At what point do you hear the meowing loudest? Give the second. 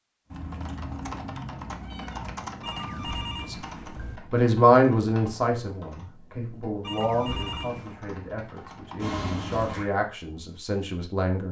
9 s.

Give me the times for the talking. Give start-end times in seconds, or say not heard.
4.3-11.4.